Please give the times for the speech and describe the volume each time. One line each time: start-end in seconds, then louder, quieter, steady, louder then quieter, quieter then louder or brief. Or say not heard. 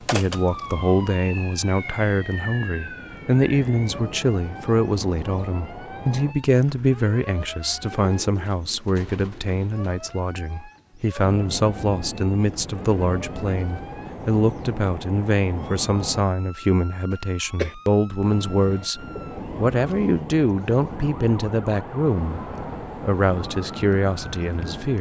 0.0-24.9 steady.